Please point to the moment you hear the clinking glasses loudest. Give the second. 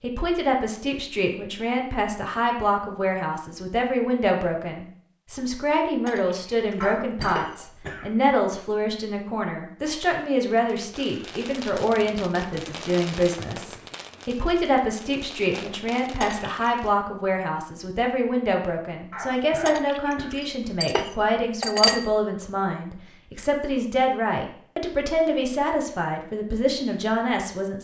22 s.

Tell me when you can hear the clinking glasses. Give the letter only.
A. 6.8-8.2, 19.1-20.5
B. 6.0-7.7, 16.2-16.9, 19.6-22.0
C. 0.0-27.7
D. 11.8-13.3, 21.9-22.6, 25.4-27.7
B.